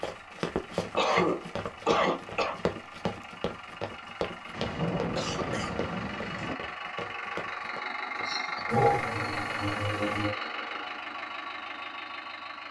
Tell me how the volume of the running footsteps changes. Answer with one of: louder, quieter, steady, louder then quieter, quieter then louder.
quieter.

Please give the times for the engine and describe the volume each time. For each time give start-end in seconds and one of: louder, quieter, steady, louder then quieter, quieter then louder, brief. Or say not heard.
0.0-12.6 louder.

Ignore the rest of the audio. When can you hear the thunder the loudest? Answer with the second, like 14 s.
5 s.